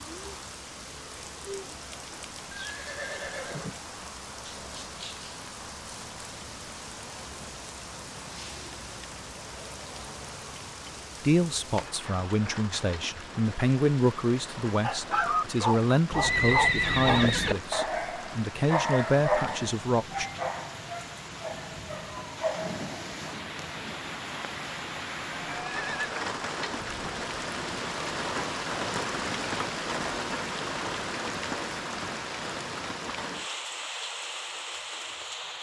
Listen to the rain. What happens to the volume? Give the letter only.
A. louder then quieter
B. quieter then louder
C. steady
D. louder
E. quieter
D.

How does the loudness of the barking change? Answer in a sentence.
The loudness of the barking goes down.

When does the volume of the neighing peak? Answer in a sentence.
The loudest moment of the neighing is at 17 seconds.